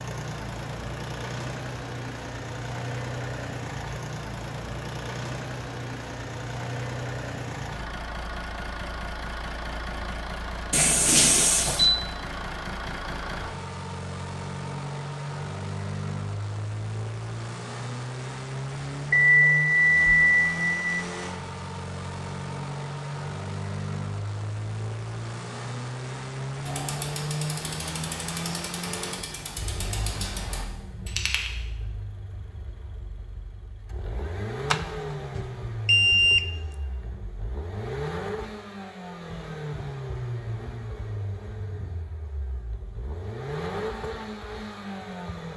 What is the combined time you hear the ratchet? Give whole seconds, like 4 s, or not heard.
5 s.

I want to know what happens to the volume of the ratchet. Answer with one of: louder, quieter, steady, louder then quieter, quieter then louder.
steady.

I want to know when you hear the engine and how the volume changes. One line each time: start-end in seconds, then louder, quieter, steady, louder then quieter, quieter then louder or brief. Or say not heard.
0.0-45.5 steady.